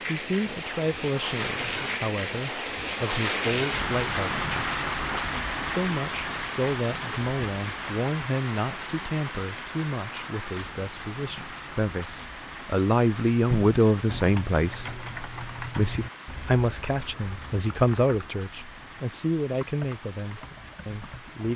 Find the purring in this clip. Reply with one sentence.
You can't hear the purring here.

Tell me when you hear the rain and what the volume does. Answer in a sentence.
You can hear the rain from 0.0 to 21.5 s, getting quieter.